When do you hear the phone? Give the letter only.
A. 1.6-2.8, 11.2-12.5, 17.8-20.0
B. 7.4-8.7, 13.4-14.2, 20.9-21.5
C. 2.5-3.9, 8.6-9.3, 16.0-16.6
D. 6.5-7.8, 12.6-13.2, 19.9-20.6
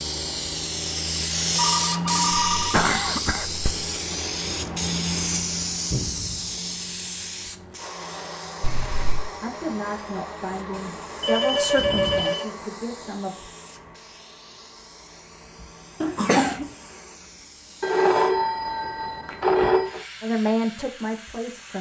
A.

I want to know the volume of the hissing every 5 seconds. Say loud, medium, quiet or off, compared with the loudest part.
loud, medium, quiet, quiet, quiet.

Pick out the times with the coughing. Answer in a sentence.
You can hear the coughing from 2.5 to 3.9 s, from 8.6 to 9.3 s and from 16.0 to 16.6 s.